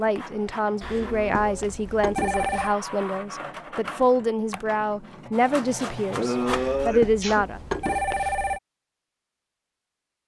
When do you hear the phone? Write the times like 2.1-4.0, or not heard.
0.8-2.8, 6.5-8.6.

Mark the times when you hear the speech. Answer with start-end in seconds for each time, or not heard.
0.0-7.6.